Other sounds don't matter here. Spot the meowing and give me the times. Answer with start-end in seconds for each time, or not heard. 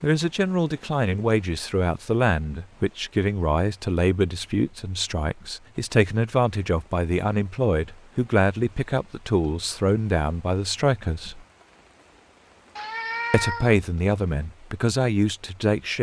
12.8-13.8.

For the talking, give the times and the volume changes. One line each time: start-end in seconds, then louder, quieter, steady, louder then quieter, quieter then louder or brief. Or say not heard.
0.0-11.4 steady
13.3-15.9 brief.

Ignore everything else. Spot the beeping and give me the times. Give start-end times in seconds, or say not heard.
not heard.